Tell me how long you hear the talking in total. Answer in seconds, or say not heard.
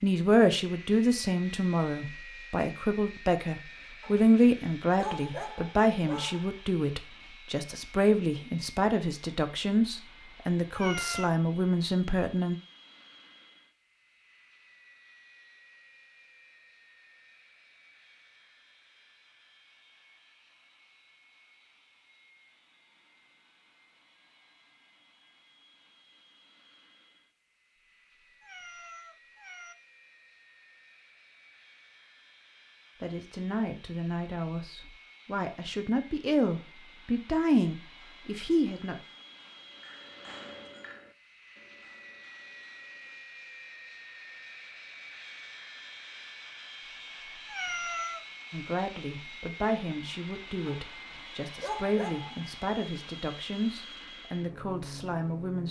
26 s.